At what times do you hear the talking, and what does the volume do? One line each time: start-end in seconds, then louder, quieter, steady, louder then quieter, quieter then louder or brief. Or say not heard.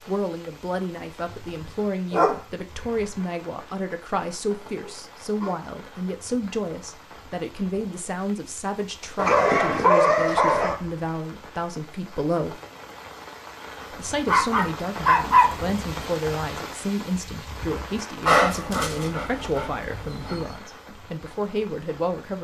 0.1-12.6 steady
13.9-22.3 steady.